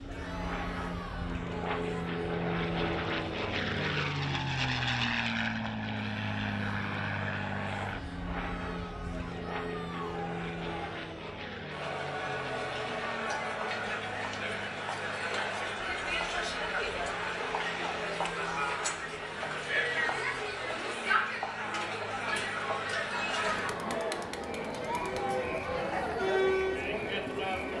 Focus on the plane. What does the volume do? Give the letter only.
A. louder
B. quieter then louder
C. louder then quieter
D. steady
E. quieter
E.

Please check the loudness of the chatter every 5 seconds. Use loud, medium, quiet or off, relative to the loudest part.
quiet, quiet, medium, loud, loud, loud.